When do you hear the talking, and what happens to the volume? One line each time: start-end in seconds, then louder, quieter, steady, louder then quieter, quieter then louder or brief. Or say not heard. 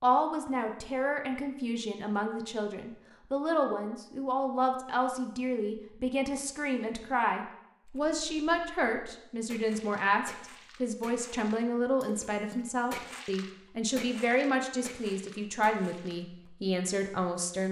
0.0-17.6 steady.